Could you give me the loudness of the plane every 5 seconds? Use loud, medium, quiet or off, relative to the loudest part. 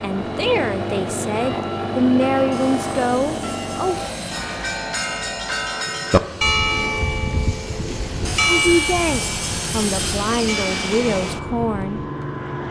loud, medium, loud.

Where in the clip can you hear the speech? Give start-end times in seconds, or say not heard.
0.0-4.0, 8.5-12.0.